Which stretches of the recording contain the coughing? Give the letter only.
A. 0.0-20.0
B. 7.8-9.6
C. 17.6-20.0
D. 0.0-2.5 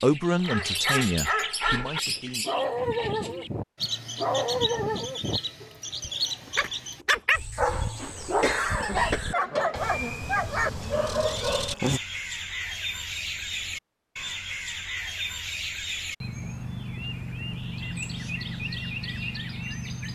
B.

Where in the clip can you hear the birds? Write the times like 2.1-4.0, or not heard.
0.0-20.0.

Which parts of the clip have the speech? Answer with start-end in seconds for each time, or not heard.
0.0-2.5.